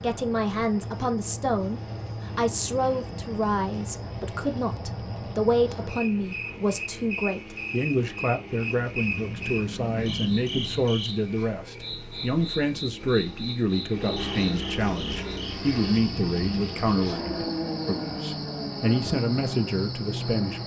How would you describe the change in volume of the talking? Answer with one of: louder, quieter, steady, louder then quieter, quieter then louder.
steady.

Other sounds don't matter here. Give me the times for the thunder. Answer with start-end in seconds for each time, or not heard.
8.9-10.8.